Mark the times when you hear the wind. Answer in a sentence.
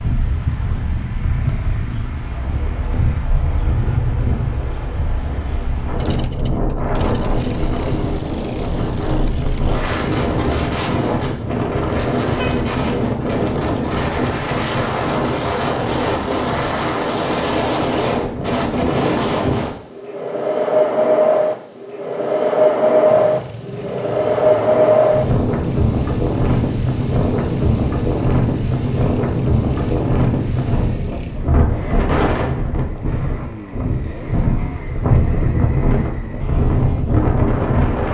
You can hear the wind from 0.0 to 38.0 s.